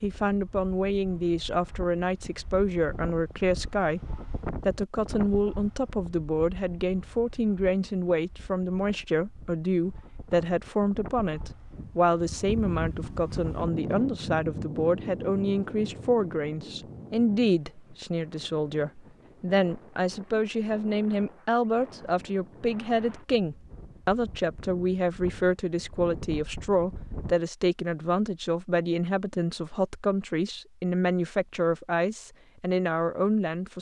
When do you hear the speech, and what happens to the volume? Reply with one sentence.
The speech can be heard from 0.0 to 4.0 s, at a steady volume; and from 4.7 to 33.7 s, at a steady volume.